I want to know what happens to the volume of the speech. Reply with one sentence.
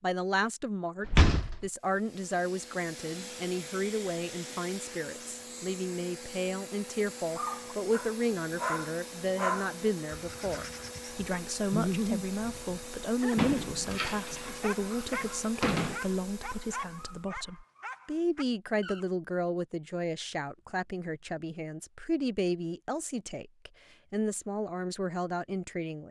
The volume of the speech stays about the same.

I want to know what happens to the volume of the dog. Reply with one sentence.
The loudness of the dog goes down.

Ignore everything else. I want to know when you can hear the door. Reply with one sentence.
You can hear the door from 1.1 to 1.6 s and from 13.3 to 16.0 s.